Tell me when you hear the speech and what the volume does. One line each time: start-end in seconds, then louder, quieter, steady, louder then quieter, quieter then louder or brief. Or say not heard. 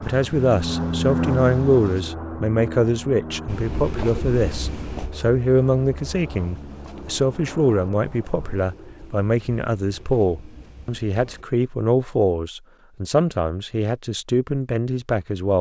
0.0-15.5 steady.